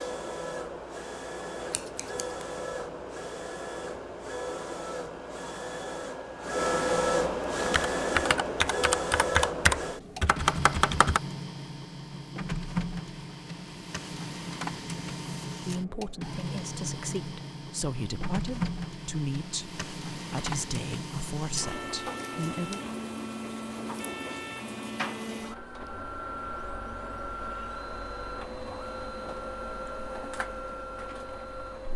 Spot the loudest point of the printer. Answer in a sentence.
The loudest moment of the printer is at 7 seconds.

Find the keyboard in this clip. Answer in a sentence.
You can hear the keyboard from 7.5 to 11.2 s.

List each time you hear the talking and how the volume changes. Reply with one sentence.
The talking can be heard from 15.6 to 22.8 s, at a steady volume.